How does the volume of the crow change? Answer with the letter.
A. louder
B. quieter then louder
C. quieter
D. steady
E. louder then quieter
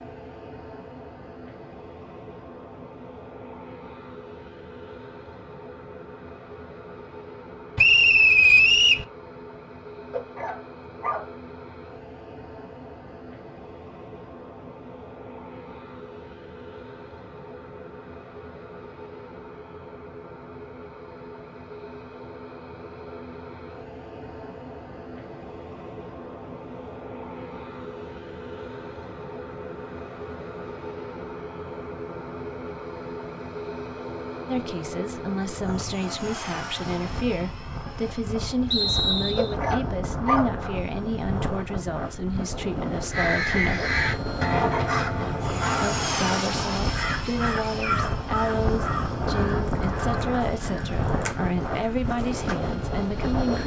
C.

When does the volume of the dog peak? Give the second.
40 s.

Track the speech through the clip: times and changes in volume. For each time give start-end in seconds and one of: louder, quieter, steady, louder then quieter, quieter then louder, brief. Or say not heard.
34.5-43.9 steady
45.8-53.6 steady.